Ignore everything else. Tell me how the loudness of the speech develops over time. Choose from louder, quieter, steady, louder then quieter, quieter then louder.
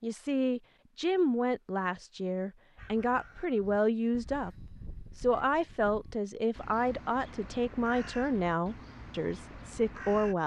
steady.